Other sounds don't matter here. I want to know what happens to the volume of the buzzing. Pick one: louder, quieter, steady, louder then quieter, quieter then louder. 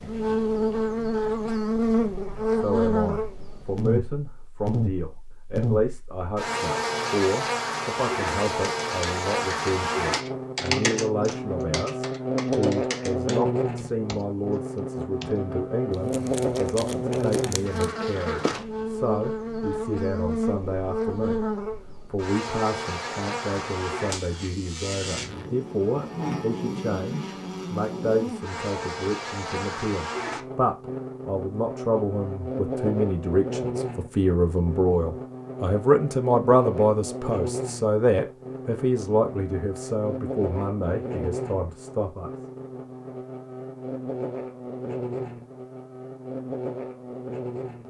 quieter.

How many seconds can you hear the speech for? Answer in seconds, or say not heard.
40 s.